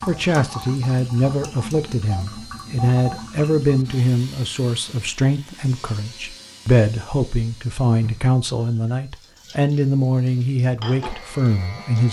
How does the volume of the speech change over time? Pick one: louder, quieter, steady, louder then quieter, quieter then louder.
steady.